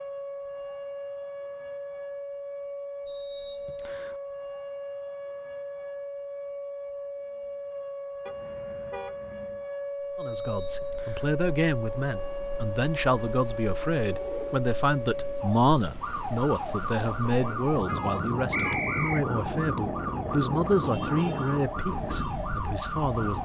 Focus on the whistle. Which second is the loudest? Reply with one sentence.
The volume of the whistle peaks at 19 seconds.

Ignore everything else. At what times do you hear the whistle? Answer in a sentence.
The whistle can be heard from 3.0 to 4.2 s, from 10.2 to 11.3 s and from 18.5 to 19.2 s.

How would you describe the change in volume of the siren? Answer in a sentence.
The volume of the siren stays about the same.